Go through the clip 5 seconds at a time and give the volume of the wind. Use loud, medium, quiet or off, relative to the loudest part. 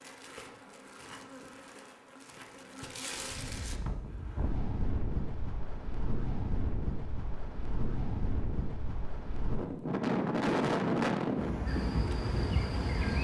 medium, medium, loud.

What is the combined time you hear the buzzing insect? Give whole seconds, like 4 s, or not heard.
5 s.